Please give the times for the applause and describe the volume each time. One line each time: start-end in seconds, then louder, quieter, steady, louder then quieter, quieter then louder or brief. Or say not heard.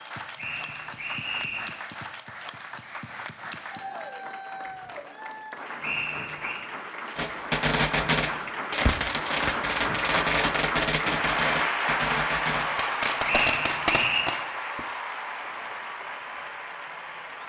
0.0-17.4 louder then quieter.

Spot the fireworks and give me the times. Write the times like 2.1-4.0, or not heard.
7.2-14.8.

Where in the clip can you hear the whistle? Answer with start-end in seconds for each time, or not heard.
0.3-1.7, 5.8-6.6, 13.2-14.2.